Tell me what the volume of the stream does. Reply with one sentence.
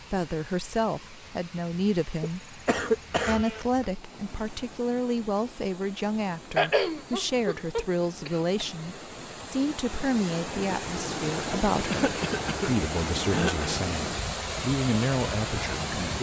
The loudness of the stream goes up.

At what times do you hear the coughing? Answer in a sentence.
You can hear the coughing from 2.2 to 3.9 s, from 6.5 to 8.7 s and from 11.9 to 13.8 s.